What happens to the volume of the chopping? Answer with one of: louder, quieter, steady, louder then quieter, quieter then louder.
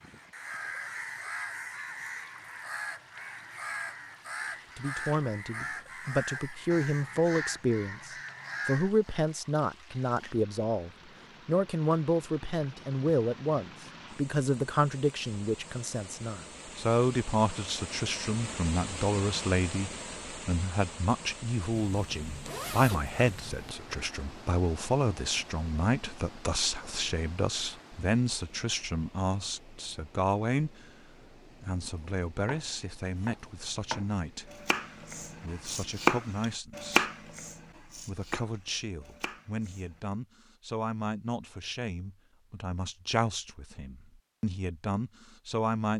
louder then quieter.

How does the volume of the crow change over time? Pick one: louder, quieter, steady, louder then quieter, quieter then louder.
steady.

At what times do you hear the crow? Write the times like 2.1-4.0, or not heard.
0.0-9.2.